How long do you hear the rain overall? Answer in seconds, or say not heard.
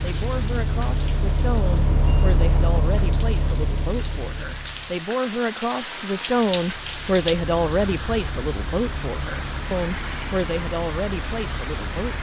12 s.